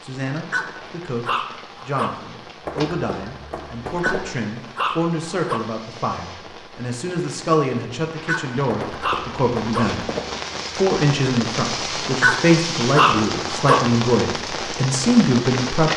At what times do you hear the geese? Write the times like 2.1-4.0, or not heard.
2.6-4.3, 8.7-10.4.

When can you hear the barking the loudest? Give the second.
13 s.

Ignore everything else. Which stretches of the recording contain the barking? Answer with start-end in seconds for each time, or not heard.
0.5-2.1, 4.0-5.6, 8.2-9.9, 12.2-13.8.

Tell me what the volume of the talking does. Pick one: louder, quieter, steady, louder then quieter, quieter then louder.
louder.